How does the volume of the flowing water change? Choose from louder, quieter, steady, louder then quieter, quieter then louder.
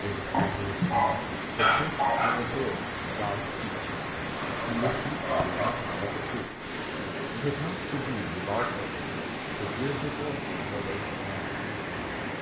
steady.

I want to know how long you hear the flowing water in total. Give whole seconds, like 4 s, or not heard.
12 s.